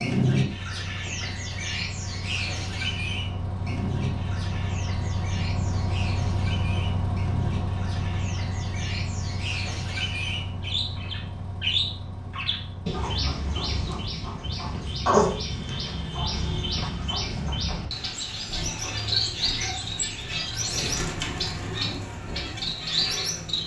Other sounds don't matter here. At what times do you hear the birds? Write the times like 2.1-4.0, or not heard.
0.0-23.6.